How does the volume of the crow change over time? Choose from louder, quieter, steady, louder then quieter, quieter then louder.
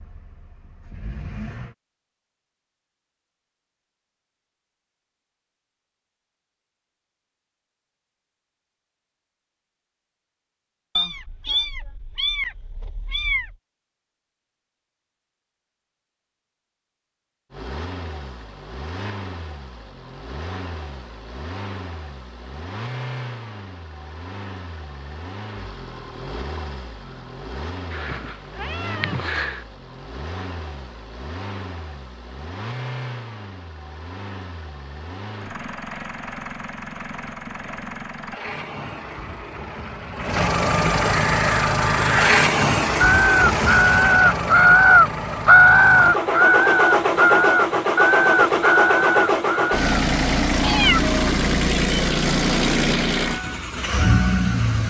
louder then quieter.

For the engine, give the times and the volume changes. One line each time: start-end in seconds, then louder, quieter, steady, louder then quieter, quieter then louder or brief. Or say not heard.
0.0-1.8 brief
17.5-54.8 louder.